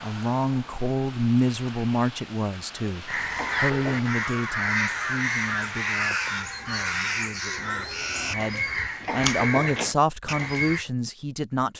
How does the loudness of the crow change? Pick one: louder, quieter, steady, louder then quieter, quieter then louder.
steady.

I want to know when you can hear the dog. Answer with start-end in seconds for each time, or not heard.
not heard.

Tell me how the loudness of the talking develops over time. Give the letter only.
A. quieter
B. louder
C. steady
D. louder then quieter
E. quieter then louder
E.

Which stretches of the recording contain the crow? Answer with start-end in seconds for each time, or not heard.
3.0-10.8.